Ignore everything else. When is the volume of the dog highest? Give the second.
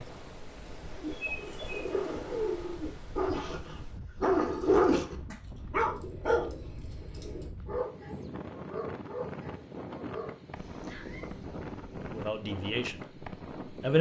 5 s.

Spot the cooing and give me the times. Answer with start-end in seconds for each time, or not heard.
1.0-3.0, 5.9-7.5, 10.6-12.2.